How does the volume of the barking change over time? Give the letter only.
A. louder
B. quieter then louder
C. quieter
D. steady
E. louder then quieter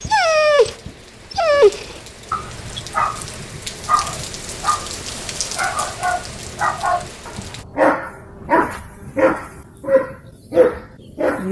B.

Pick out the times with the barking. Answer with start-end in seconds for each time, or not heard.
0.0-11.4.